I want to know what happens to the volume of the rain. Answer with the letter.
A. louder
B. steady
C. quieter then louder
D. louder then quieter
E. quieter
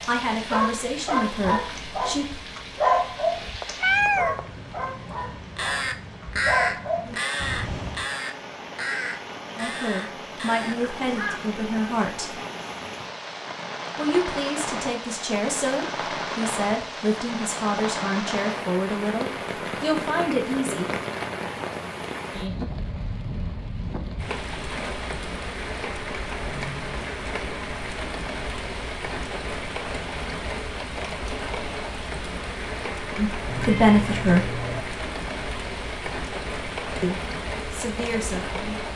A.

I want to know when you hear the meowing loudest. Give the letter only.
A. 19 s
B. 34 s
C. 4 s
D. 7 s
C.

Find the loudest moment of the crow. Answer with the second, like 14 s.
7 s.